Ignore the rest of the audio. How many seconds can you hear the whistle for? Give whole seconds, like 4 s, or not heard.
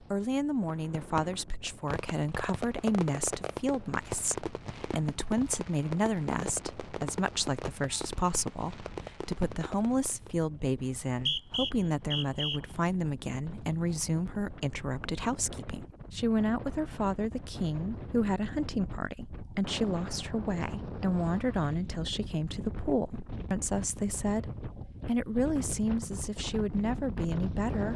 2 s.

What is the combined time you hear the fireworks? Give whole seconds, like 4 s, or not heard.
10 s.